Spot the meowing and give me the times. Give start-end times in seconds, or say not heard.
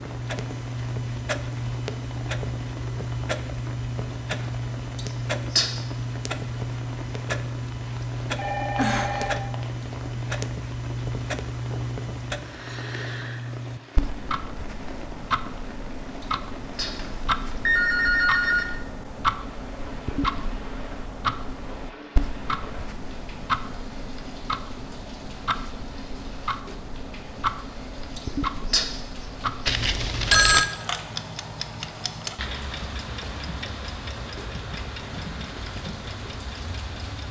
not heard.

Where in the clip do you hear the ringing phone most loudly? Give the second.
30 s.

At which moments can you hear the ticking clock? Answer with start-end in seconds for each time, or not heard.
0.0-37.2.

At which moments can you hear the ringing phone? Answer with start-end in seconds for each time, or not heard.
8.3-9.7, 16.9-18.6, 29.6-30.6.